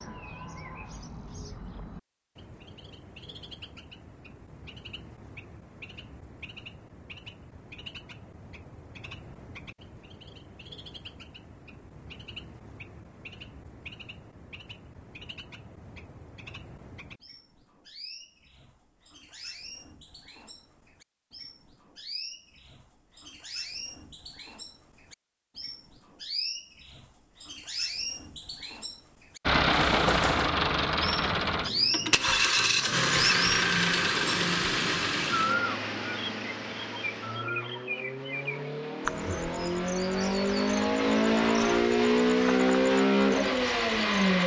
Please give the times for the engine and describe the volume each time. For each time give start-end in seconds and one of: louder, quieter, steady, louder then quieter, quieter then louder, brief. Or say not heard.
29.4-44.4 quieter then louder.